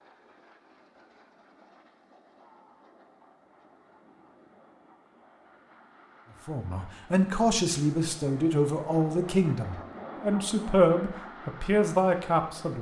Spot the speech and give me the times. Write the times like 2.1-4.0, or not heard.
6.5-12.7.